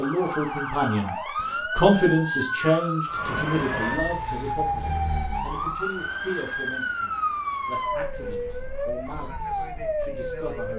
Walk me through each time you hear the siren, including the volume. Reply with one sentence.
The siren can be heard from 0.0 to 10.7 s, at a steady volume.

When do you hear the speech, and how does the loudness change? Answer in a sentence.
You can hear the speech briefly from 0.0 to 1.1 s; and from 1.8 to 10.7 s, getting quieter.